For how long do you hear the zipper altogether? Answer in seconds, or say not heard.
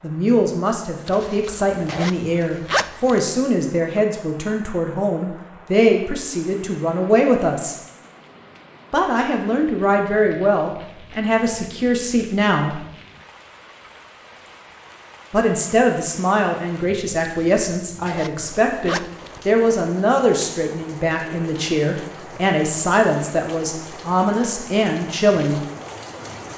4 s.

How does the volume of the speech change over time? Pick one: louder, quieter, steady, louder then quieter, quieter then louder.
steady.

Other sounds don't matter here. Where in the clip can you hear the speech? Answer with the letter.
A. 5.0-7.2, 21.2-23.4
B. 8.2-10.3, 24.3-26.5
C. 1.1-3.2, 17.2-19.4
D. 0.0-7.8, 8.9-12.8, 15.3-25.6
D.